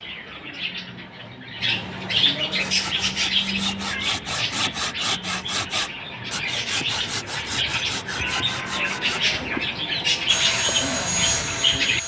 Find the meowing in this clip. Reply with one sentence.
The meowing can be heard from 3.8 to 4.2 s and from 8.2 to 9.9 s.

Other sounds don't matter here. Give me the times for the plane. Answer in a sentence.
The plane can be heard from 10.2 to 12.0 s.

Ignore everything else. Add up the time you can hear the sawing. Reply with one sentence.
The sawing can be heard for 7 seconds in total.